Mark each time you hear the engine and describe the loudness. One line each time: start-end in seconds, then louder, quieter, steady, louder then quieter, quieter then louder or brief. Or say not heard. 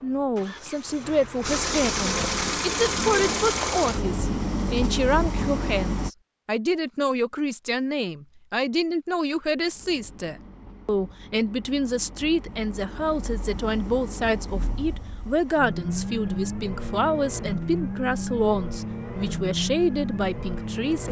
0.0-6.1 louder
9.6-21.0 louder.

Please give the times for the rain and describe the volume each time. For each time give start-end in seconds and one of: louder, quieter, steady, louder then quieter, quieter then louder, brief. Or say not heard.
not heard.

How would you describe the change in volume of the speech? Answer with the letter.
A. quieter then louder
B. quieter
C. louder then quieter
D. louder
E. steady
E.